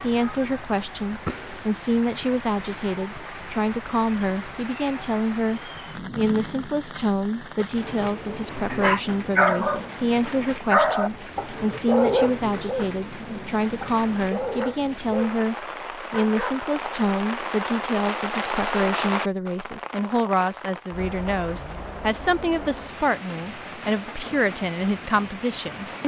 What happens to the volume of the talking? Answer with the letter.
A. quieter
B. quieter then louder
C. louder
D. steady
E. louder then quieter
D.